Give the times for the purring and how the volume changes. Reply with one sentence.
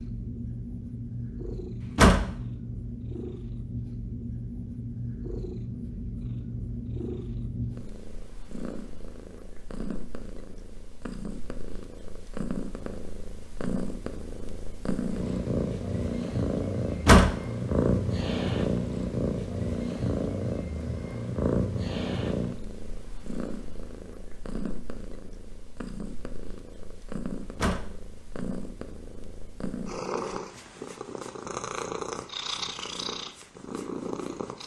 You can hear the purring from 0.0 to 34.6 s, getting louder then quieter.